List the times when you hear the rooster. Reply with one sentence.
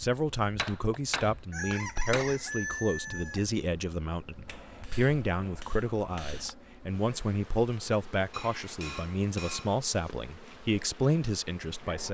You can hear the rooster from 1.5 to 3.5 s.